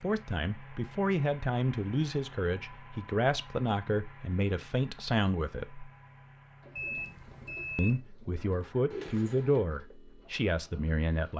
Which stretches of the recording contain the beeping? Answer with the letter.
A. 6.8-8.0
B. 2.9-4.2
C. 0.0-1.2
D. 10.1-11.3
A.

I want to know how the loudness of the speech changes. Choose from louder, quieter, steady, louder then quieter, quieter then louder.
steady.